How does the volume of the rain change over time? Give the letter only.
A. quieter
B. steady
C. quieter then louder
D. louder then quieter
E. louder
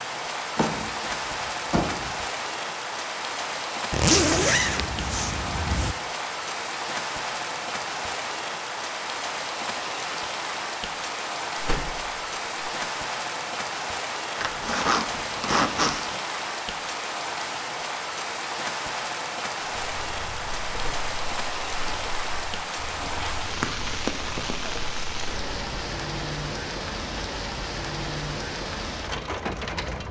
B.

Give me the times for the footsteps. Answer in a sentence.
The footsteps can't be heard in this clip.